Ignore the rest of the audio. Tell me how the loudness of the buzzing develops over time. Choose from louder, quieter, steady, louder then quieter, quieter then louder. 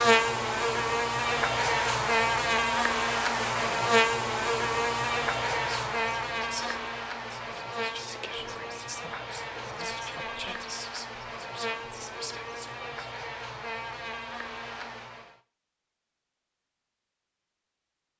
quieter.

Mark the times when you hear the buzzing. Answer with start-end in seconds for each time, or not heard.
0.0-15.4.